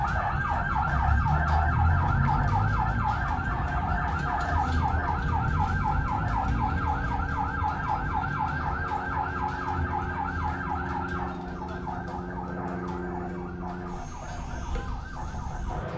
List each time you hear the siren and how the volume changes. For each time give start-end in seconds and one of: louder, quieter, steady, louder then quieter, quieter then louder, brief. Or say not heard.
0.0-15.9 quieter.